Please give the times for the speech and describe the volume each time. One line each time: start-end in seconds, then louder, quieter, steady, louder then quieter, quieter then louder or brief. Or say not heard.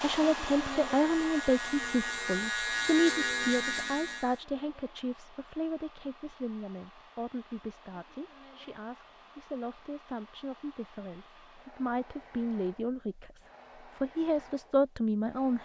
0.0-15.6 quieter then louder.